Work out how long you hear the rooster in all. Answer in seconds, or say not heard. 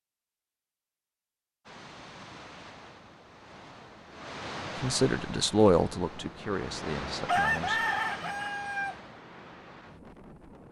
2 s.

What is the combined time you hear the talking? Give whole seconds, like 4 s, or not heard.
3 s.